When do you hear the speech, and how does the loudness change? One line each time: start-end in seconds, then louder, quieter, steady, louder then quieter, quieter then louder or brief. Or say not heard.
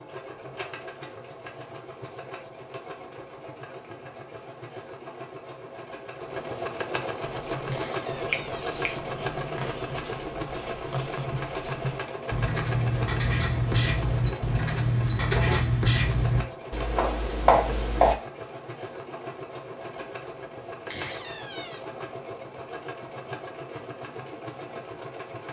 not heard.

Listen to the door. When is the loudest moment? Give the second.
21 s.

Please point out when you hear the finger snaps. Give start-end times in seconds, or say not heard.
8.3-8.9.